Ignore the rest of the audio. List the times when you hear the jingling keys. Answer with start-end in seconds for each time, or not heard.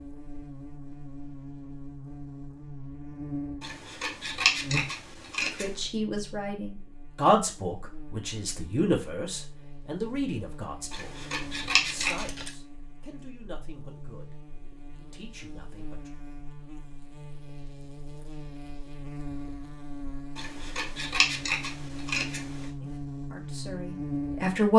11.9-12.6.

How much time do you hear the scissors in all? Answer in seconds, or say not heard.
6 s.